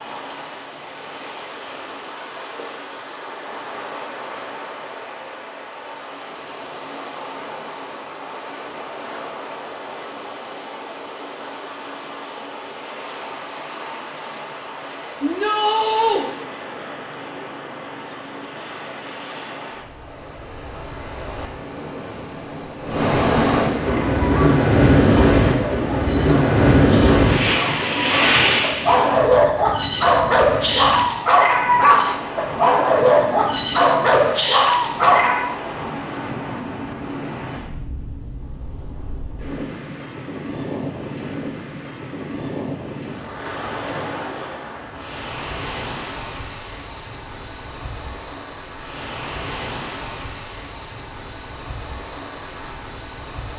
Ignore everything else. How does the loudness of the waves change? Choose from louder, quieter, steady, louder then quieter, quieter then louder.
louder then quieter.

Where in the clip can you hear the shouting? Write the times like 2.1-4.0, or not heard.
15.2-16.2.